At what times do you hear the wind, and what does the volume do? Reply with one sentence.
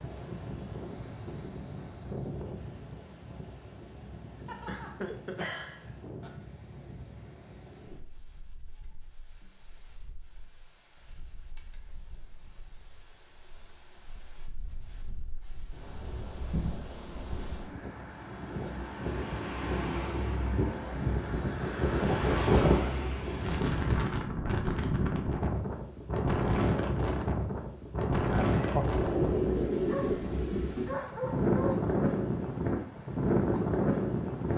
The wind can be heard from 0.0 to 34.5 s, getting quieter then louder.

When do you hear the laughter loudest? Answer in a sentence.
The loudest moment of the laughter is at 29 seconds.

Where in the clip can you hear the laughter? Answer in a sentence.
The laughter can be heard from 4.7 to 5.9 s and from 28.2 to 29.1 s.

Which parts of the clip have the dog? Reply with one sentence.
The dog can be heard from 4.5 to 6.3 s and from 29.9 to 31.7 s.